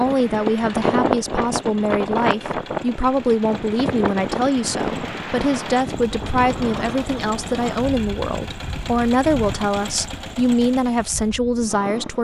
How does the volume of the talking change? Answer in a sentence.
The loudness of the talking stays about the same.